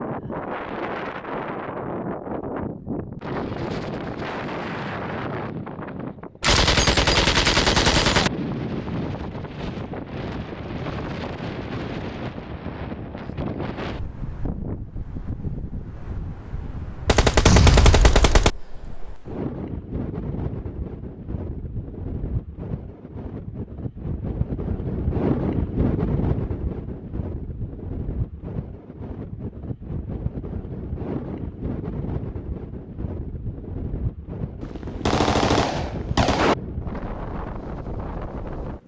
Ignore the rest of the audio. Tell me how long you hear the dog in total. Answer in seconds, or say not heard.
not heard.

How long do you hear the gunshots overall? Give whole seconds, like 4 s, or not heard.
5 s.